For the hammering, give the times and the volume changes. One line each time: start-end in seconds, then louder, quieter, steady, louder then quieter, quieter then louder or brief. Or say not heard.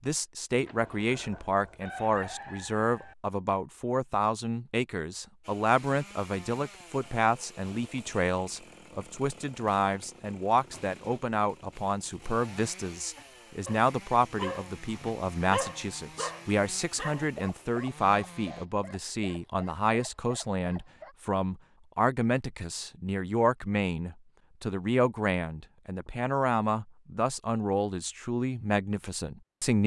not heard.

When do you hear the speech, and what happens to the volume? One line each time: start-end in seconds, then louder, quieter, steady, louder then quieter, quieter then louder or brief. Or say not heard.
0.0-29.8 steady.